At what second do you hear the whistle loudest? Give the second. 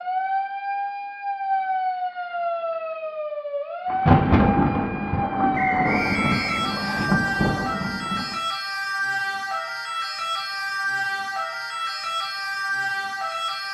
6 s.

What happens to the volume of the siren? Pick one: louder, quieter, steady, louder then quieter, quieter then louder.
steady.